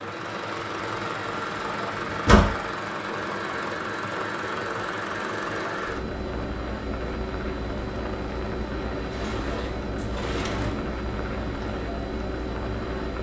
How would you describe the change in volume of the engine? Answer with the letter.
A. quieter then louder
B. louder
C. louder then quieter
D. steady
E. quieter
D.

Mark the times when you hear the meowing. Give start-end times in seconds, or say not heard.
not heard.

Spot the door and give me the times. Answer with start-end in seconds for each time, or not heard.
2.1-2.6, 9.1-10.8.